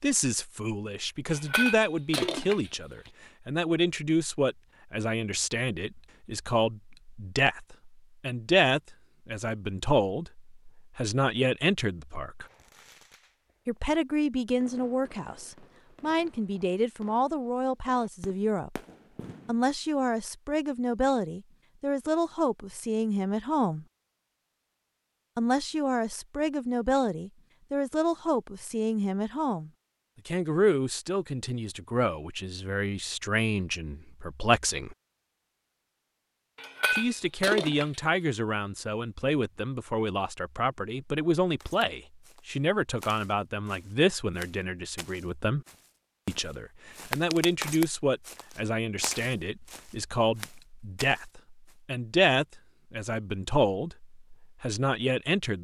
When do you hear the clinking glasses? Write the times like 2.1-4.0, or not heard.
1.2-3.1, 36.5-38.0.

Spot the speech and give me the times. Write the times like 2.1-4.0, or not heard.
0.0-12.4, 13.7-18.8, 19.4-23.9, 25.4-35.0, 36.9-45.6, 46.2-55.5.